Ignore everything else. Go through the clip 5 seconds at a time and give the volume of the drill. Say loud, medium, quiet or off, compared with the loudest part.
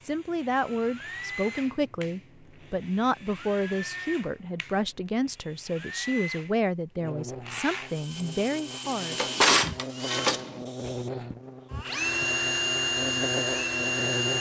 quiet, medium, loud.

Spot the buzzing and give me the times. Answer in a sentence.
The buzzing can be heard from 7.0 to 14.3 s.